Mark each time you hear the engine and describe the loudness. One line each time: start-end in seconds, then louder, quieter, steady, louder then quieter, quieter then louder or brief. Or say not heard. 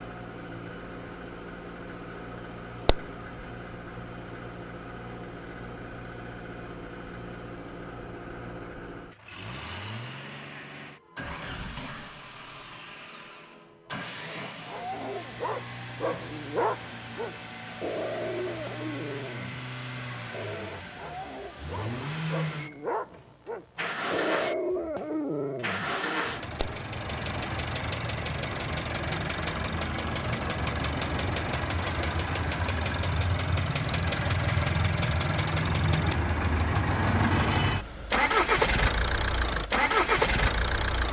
0.0-41.0 louder.